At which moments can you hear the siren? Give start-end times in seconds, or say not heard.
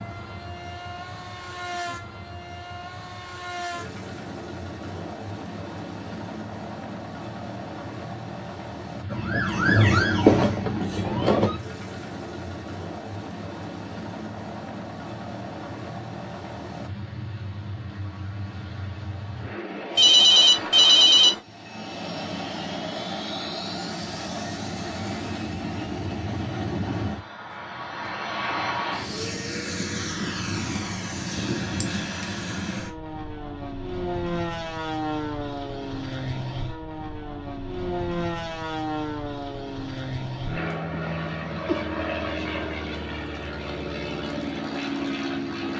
9.1-11.6.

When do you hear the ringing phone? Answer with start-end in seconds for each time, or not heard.
19.9-21.4.